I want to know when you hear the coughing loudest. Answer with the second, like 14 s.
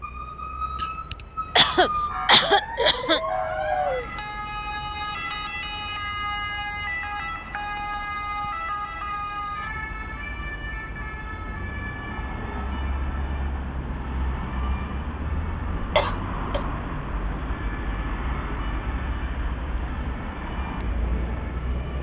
2 s.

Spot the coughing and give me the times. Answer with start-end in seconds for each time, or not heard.
0.8-3.2, 15.9-16.6.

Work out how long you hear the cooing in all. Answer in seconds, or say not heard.
2 s.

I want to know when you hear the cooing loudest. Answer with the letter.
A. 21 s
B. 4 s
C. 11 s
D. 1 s
B.